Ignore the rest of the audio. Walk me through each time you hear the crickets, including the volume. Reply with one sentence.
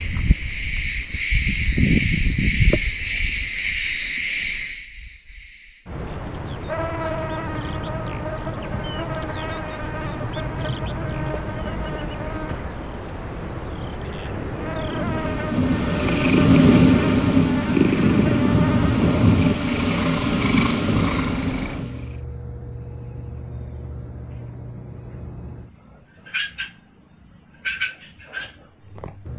The crickets can be heard from 0.0 to 29.3 s, getting quieter.